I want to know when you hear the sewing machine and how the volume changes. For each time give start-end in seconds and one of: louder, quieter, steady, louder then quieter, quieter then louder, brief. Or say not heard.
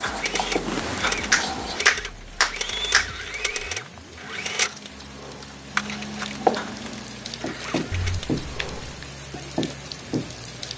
0.0-8.2 quieter.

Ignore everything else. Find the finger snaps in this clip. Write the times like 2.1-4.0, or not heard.
1.3-3.1, 7.9-9.1.